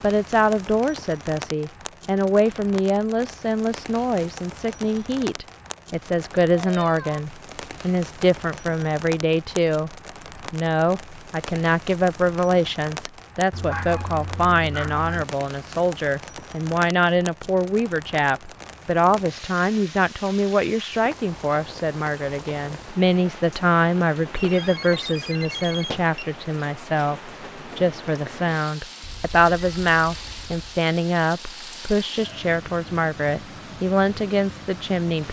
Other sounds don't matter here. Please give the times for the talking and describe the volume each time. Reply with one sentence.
You can hear the talking from 0.0 to 35.2 s, at a steady volume.